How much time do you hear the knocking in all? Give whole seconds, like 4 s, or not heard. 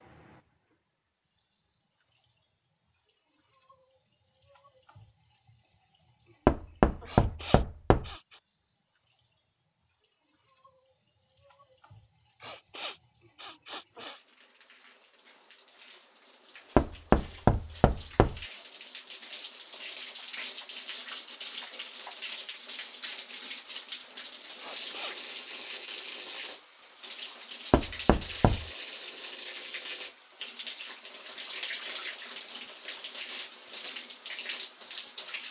4 s.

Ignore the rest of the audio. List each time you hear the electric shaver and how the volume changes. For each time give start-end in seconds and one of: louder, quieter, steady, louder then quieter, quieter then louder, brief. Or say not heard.
not heard.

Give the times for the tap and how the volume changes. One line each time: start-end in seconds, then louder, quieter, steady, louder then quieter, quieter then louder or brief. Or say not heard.
0.0-35.4 louder.